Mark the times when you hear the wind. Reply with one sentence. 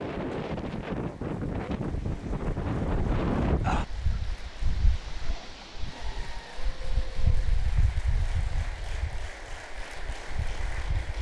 You can hear the wind from 0.0 to 11.1 s.